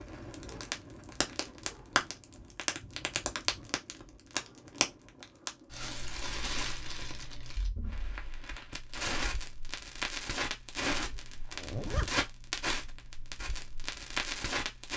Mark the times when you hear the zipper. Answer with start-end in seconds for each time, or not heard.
10.9-12.2.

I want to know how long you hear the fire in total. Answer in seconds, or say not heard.
15 s.